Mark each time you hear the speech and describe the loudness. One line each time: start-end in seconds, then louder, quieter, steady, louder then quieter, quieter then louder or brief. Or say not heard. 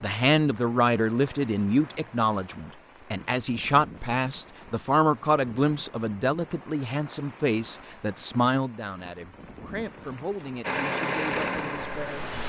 0.0-12.2 quieter.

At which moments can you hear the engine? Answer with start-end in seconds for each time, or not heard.
10.6-12.4.